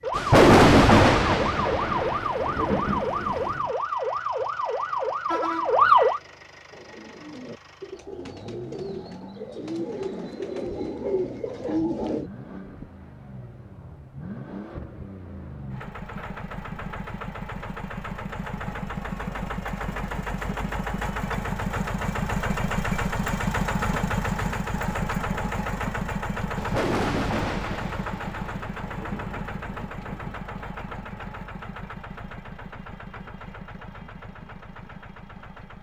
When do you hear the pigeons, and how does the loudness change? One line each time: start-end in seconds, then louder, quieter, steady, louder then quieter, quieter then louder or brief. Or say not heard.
6.7-12.3 louder.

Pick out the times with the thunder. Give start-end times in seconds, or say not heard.
0.1-3.6, 26.6-30.4.